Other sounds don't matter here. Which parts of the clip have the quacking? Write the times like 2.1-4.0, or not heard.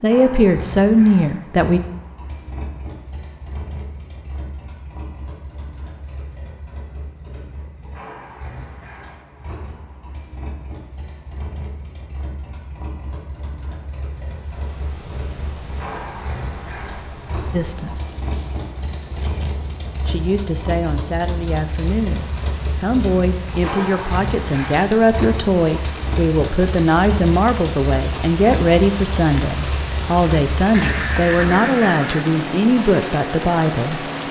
30.7-32.2.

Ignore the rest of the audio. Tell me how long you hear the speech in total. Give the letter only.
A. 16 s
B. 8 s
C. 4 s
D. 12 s
A.